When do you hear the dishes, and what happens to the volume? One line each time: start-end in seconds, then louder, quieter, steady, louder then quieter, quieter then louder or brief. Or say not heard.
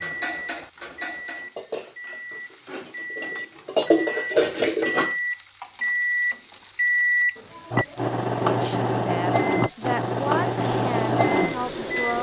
0.0-5.2 quieter then louder.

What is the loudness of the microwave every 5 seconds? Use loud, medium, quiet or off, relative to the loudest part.
medium, loud, loud.